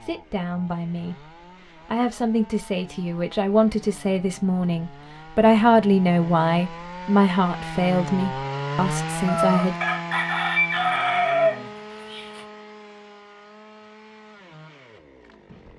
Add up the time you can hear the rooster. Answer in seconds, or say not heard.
3 s.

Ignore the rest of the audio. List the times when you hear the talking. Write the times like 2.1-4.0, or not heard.
0.0-9.8.